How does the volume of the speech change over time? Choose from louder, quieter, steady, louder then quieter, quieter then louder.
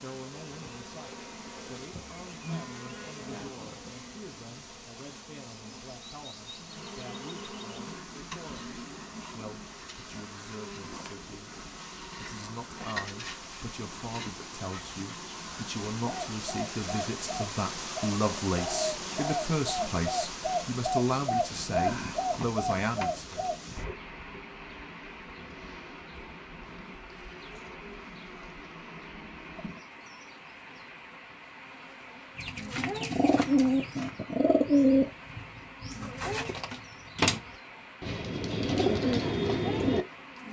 louder.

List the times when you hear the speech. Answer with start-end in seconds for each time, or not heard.
0.0-11.5, 12.2-23.5.